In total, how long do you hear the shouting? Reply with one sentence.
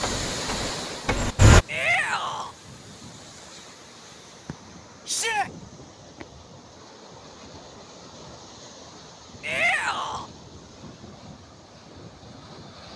The shouting can be heard for 2 seconds in total.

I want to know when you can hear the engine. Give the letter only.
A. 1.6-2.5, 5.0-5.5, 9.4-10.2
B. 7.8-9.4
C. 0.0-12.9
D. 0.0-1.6
D.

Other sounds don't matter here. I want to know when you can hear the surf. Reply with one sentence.
The surf can be heard from 0.0 to 12.9 s.